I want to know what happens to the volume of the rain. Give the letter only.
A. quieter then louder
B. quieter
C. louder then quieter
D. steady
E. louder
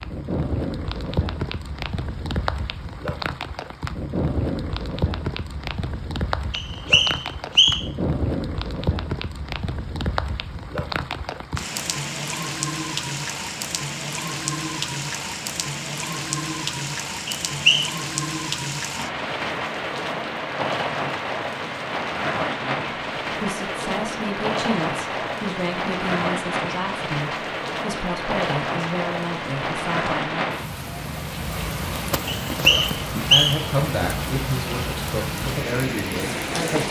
D.